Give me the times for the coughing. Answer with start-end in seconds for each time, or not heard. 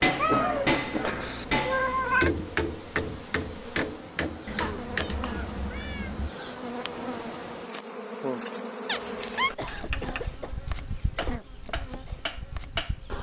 0.2-1.3, 4.6-5.5, 9.6-11.4.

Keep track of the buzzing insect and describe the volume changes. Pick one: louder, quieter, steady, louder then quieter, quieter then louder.
louder then quieter.